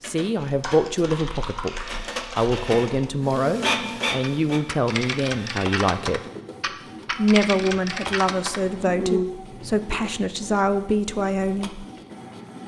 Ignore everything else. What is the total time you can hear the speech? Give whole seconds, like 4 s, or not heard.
11 s.